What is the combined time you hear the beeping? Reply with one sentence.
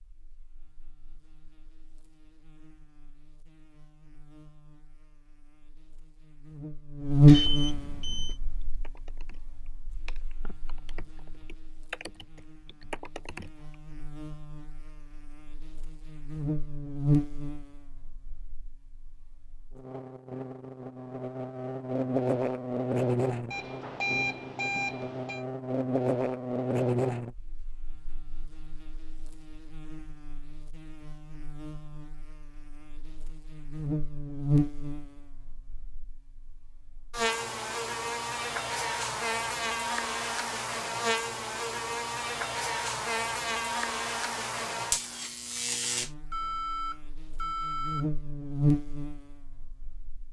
You can hear the beeping for 5 seconds altogether.